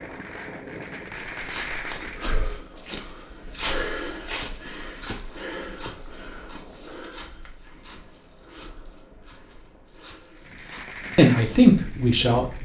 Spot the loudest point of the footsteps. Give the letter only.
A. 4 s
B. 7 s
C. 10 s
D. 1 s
A.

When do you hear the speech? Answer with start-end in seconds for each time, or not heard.
11.2-12.4.